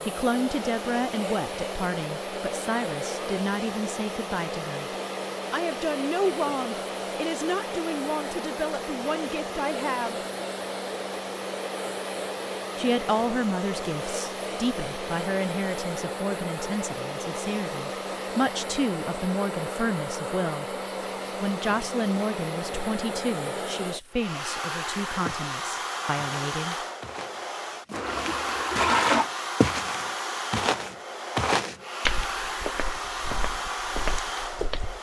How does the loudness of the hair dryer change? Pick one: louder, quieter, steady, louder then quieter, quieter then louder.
steady.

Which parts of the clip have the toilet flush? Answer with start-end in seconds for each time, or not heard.
27.9-29.3.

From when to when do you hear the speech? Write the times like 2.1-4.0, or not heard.
0.0-4.9, 5.5-10.2, 12.8-20.8, 21.4-26.8.